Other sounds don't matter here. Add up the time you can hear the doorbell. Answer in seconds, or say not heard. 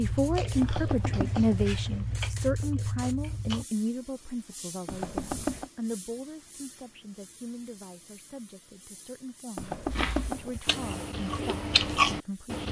3 s.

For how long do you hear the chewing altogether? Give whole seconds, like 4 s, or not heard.
6 s.